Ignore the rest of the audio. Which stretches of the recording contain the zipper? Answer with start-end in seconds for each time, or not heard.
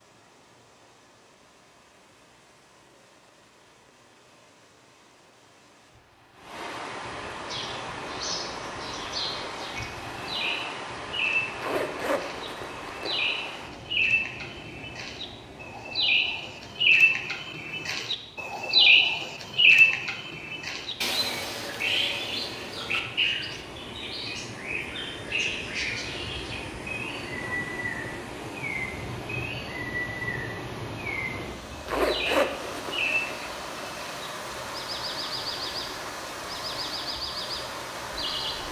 11.6-13.2, 31.9-33.1.